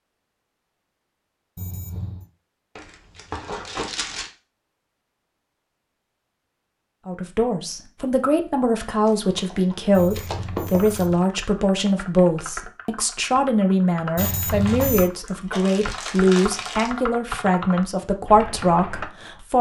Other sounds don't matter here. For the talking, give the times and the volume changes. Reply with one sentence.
The talking can be heard from 7.0 to 19.5 s, at a steady volume.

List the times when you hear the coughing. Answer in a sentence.
You can't hear the coughing here.